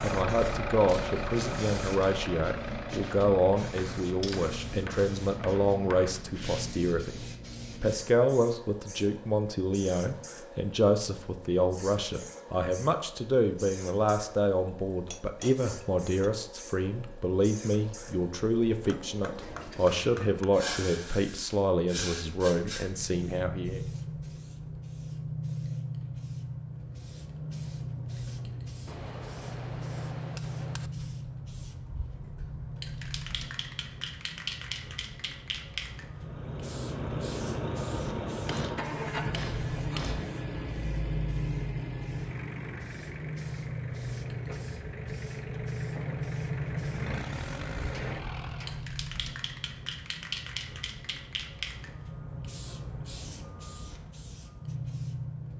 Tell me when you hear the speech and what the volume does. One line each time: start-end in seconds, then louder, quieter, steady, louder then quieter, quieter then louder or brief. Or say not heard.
0.0-23.8 steady.